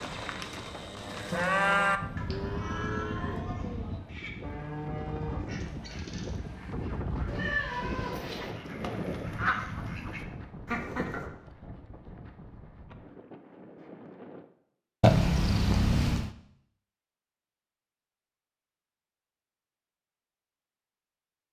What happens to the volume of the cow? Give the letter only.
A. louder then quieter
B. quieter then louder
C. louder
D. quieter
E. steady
A.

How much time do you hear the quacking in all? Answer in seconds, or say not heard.
6 s.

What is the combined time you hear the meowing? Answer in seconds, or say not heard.
5 s.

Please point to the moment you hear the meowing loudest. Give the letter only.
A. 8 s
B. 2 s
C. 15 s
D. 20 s
C.